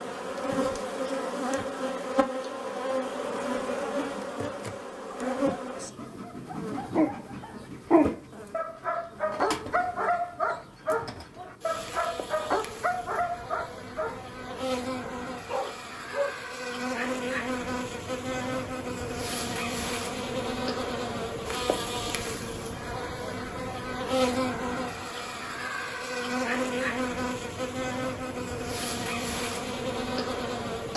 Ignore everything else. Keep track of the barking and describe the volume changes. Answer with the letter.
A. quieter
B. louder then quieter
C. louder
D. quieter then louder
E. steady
A.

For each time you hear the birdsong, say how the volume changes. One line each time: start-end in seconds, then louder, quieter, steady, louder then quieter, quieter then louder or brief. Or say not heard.
not heard.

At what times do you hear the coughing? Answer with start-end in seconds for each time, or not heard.
not heard.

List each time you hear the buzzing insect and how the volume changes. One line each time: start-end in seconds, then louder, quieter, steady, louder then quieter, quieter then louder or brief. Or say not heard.
0.0-30.9 quieter then louder.